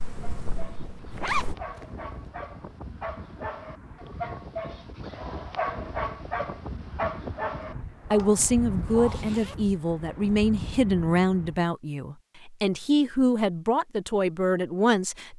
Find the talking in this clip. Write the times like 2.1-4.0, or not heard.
8.1-15.3.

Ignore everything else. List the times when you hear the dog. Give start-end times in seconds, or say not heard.
0.2-9.3.